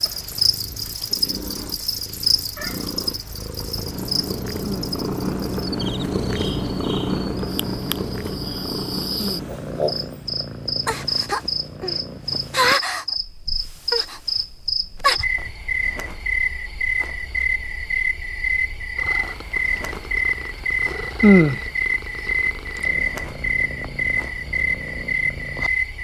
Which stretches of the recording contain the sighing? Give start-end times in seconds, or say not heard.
4.6-5.0, 9.2-9.6, 21.2-21.6.